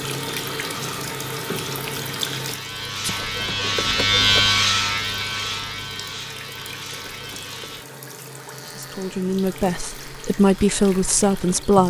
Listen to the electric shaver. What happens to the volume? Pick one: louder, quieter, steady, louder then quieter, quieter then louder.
louder then quieter.